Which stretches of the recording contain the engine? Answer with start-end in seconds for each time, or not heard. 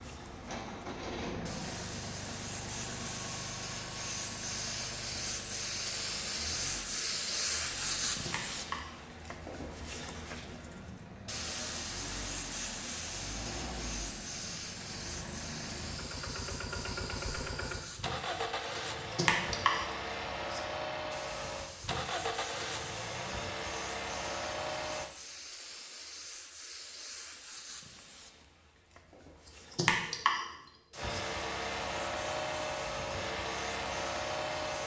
0.0-25.1, 30.9-34.8.